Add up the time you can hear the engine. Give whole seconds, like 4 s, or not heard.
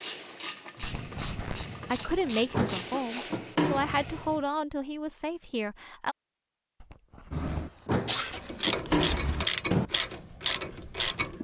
2 s.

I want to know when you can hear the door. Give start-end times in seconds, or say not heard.
2.5-4.0, 7.8-9.8.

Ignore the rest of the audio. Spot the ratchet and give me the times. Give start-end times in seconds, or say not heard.
0.0-4.4, 8.2-11.3.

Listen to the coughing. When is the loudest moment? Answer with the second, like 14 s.
8 s.